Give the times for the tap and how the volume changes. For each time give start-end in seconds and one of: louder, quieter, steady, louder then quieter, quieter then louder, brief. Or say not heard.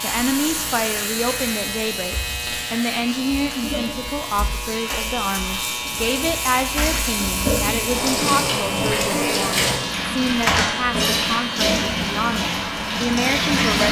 0.0-13.8 louder.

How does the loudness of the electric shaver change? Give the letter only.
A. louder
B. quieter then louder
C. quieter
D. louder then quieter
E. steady
E.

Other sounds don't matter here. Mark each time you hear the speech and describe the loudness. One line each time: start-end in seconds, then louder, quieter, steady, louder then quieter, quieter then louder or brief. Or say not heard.
0.0-13.8 steady.